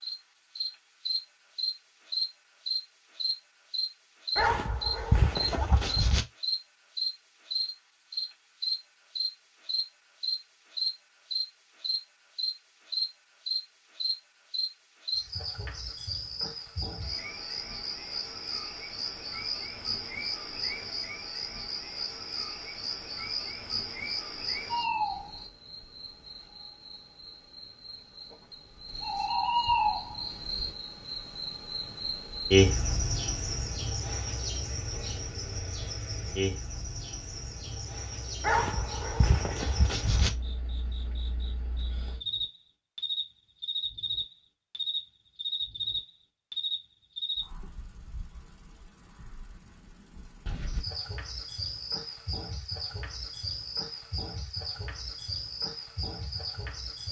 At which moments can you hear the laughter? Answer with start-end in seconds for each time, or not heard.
5.5-6.0.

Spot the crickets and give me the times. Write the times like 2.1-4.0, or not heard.
0.0-57.0.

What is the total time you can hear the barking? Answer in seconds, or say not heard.
4 s.